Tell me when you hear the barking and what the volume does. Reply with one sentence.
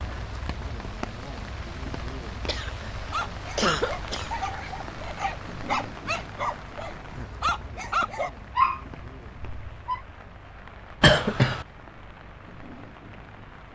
You can hear the barking from 3.1 to 10.0 s, getting louder.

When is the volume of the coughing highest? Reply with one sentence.
The volume of the coughing peaks at 11 seconds.